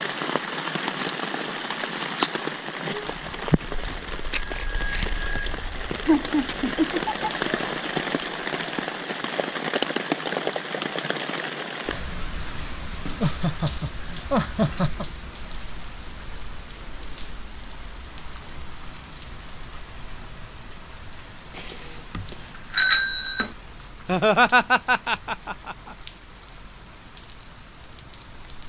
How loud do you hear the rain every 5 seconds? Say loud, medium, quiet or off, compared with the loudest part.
loud, loud, loud, quiet, quiet, quiet.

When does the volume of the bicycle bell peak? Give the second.
23 s.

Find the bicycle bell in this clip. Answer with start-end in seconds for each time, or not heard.
4.3-5.5, 21.6-23.5.